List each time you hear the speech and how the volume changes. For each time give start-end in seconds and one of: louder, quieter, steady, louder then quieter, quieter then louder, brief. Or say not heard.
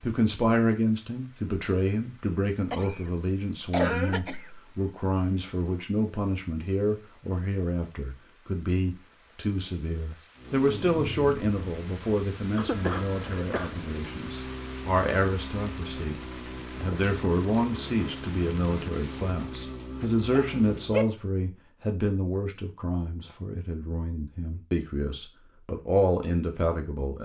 0.0-27.2 steady.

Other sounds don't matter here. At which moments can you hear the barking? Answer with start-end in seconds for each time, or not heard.
19.4-21.1.